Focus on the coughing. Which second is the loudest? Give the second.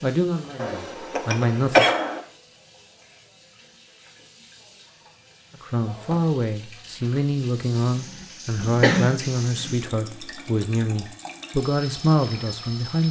2 s.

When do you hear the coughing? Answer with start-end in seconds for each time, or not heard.
0.6-2.2, 7.8-9.8.